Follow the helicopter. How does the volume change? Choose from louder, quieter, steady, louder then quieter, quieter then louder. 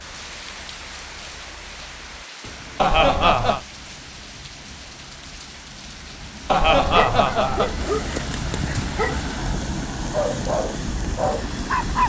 louder.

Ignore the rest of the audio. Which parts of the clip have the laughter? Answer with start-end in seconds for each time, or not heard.
2.8-3.6, 6.5-7.7.